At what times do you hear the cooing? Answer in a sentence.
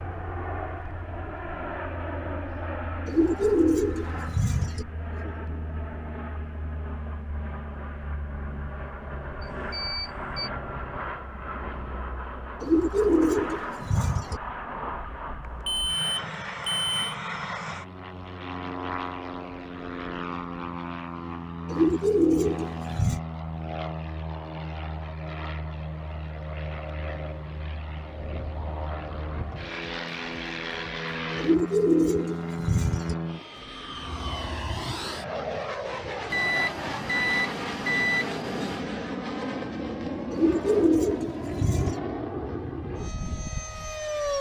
The cooing can be heard from 3.0 to 4.8 s, from 12.6 to 14.4 s, from 21.7 to 23.2 s, from 31.4 to 33.1 s and from 40.3 to 42.0 s.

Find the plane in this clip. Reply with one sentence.
The plane can be heard from 0.0 to 44.3 s.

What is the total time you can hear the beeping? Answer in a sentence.
You can hear the beeping for 5 seconds altogether.